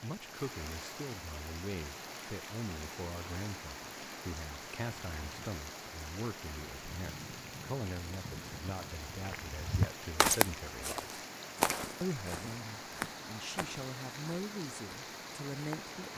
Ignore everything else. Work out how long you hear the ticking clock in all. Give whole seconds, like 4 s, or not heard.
not heard.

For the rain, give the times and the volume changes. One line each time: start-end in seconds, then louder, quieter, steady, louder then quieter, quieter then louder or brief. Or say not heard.
0.0-16.1 steady.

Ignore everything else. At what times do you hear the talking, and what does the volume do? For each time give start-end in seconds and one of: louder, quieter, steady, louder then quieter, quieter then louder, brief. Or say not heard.
0.0-11.2 steady
12.0-16.1 louder.